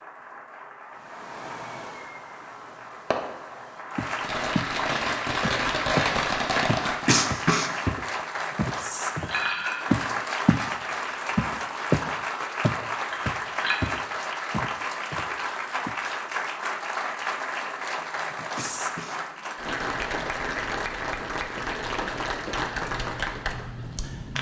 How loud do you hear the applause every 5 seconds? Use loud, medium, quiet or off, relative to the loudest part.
medium, loud, loud, loud, loud.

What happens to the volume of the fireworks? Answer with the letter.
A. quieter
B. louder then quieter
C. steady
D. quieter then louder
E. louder
E.